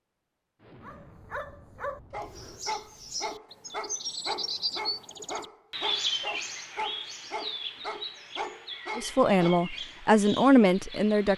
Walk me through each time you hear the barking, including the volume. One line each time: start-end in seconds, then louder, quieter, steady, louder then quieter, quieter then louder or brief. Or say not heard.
0.8-9.7 steady.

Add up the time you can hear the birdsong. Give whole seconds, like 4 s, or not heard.
9 s.